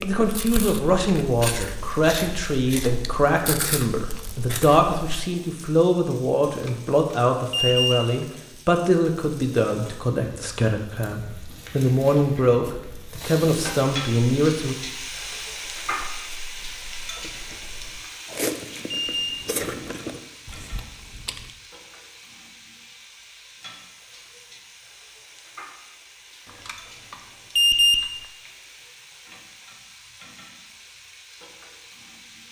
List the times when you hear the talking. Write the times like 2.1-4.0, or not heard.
0.0-14.8.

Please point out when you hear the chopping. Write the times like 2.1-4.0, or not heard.
not heard.